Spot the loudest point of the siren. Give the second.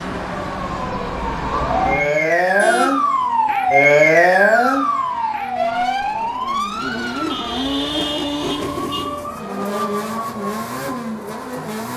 4 s.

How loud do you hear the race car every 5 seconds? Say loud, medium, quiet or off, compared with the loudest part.
medium, loud, loud.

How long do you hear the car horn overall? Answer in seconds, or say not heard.
3 s.